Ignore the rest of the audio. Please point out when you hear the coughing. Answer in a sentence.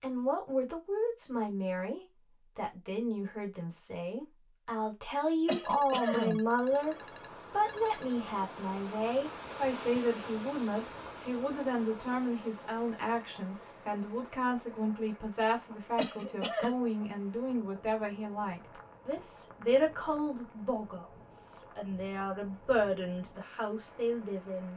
You can hear the coughing from 5.5 to 6.4 s and from 15.9 to 16.8 s.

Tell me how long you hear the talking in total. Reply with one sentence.
The talking can be heard for 25 seconds in total.